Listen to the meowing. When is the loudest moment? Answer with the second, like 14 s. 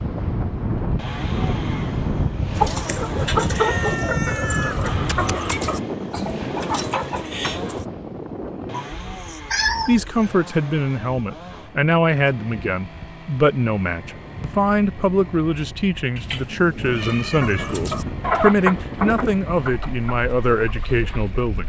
10 s.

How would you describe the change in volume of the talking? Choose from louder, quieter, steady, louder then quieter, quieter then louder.
steady.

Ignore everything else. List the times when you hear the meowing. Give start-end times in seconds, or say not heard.
3.5-5.6, 8.7-10.3, 16.1-17.9.